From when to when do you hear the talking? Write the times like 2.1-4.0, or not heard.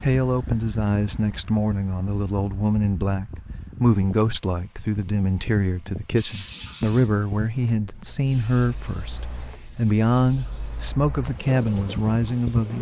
0.0-12.7.